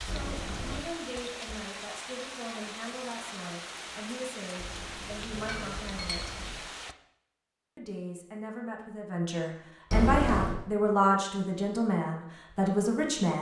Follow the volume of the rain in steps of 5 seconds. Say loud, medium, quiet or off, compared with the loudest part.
loud, loud, off.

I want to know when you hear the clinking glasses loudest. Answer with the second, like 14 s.
10 s.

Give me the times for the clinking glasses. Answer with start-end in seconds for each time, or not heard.
0.1-0.8, 4.5-6.6, 9.9-10.6.